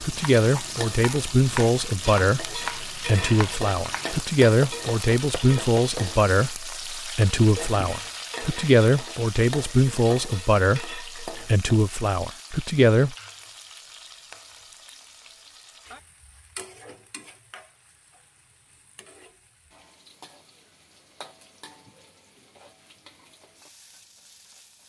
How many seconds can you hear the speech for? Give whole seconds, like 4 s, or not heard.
13 s.